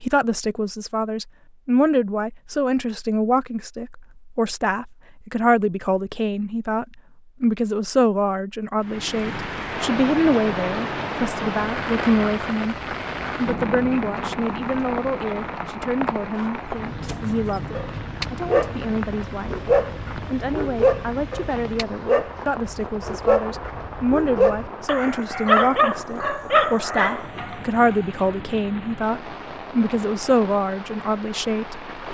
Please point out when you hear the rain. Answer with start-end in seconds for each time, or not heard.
8.8-32.1.